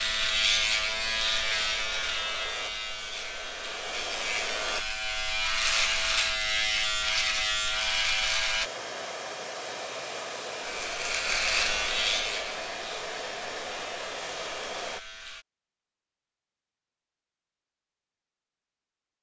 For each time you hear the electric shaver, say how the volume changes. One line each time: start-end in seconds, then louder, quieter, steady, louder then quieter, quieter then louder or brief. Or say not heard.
0.0-8.7 quieter then louder
10.6-15.4 quieter.